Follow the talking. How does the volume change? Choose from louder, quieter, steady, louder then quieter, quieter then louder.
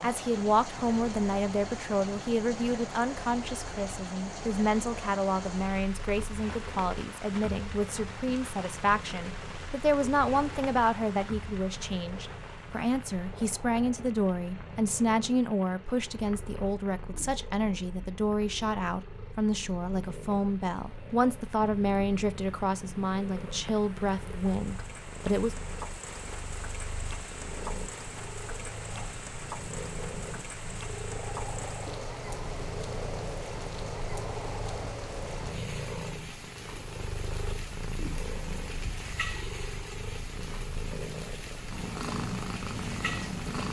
steady.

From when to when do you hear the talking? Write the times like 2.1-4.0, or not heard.
0.0-25.6.